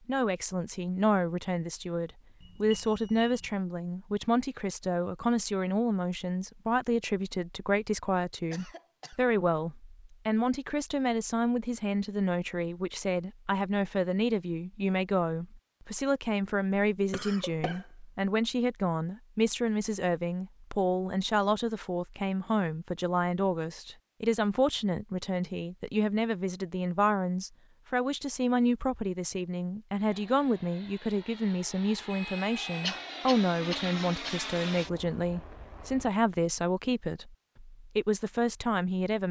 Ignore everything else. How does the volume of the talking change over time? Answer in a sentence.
The volume of the talking stays about the same.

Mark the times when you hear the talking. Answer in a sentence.
The talking can be heard from 0.1 to 39.2 s.